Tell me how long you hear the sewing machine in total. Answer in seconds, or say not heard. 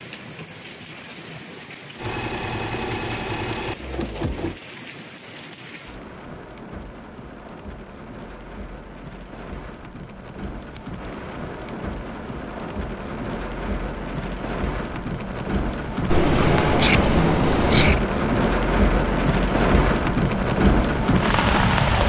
3 s.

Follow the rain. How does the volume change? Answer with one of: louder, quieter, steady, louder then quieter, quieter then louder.
louder.